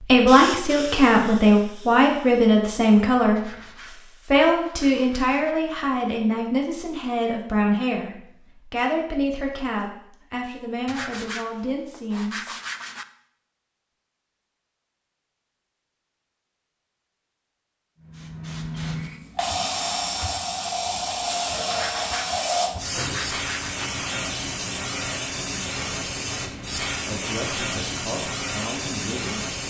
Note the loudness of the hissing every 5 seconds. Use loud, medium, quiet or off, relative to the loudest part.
medium, off, off, loud, loud, loud.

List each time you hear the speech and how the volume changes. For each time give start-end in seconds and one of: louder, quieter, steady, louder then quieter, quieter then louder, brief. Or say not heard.
0.0-12.6 quieter
27.0-29.5 brief.